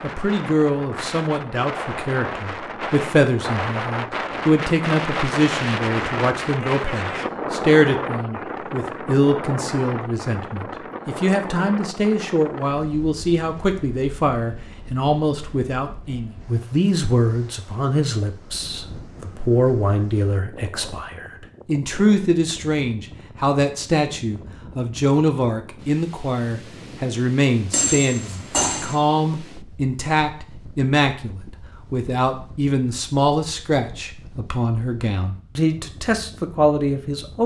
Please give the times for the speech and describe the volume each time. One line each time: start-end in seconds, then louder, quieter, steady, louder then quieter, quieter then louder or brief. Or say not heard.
0.0-37.4 steady.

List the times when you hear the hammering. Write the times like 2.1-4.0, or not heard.
27.7-28.9.